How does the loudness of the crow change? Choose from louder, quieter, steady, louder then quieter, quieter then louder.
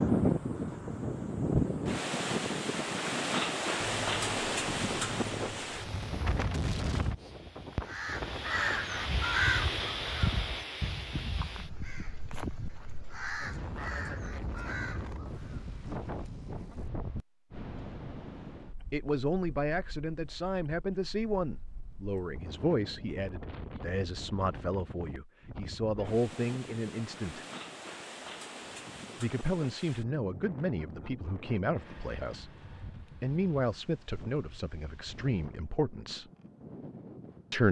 quieter.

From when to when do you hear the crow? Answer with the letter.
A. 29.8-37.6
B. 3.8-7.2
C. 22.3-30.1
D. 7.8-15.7
D.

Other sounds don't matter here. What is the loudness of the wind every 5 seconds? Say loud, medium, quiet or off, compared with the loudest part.
loud, medium, medium, quiet, quiet, quiet, quiet, quiet.